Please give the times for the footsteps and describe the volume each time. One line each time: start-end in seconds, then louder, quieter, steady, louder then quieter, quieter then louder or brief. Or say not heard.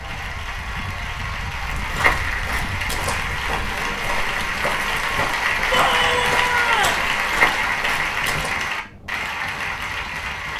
1.6-8.6 quieter then louder.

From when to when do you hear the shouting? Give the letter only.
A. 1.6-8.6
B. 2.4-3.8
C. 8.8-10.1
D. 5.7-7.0
D.